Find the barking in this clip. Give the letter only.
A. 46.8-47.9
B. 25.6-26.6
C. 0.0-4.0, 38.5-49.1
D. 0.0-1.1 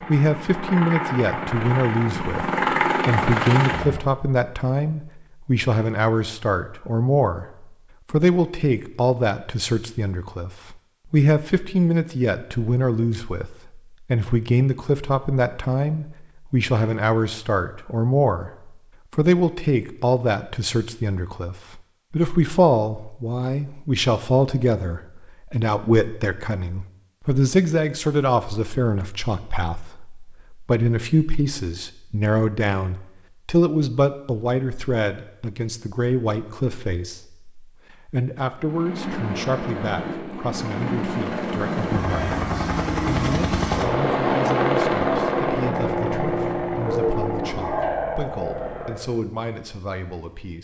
A.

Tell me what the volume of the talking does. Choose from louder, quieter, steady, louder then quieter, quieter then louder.
quieter.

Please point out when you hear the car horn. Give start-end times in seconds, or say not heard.
not heard.